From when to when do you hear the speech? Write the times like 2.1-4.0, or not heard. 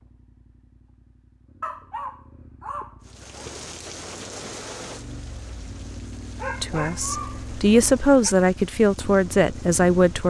6.6-10.2.